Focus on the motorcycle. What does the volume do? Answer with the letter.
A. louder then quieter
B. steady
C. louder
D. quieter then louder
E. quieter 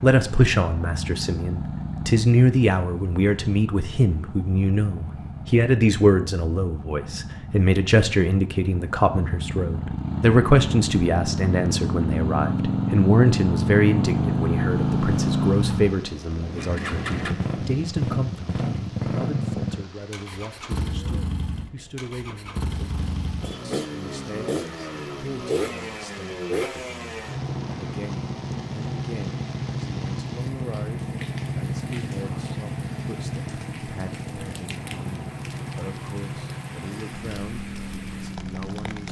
A.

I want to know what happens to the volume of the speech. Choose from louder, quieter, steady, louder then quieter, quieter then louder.
quieter.